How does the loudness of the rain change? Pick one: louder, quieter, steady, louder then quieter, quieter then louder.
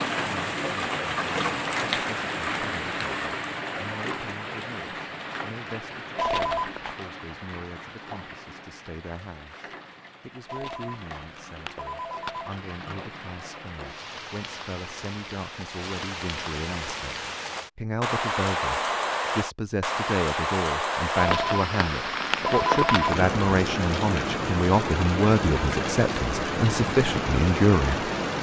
quieter then louder.